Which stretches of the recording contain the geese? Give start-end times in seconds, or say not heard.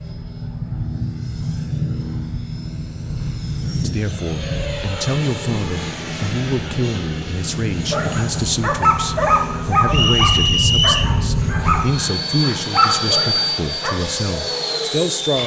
not heard.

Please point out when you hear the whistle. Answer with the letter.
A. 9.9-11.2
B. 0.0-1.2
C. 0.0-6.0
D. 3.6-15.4
A.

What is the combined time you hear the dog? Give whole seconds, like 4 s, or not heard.
6 s.